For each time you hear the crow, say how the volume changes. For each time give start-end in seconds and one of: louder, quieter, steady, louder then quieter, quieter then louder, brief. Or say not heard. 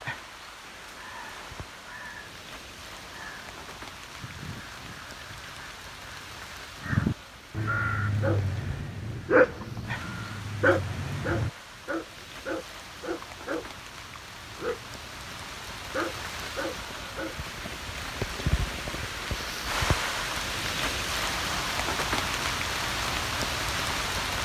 0.7-11.5 louder then quieter.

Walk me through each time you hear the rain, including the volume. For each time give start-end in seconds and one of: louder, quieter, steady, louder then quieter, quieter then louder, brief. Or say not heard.
0.0-24.3 louder.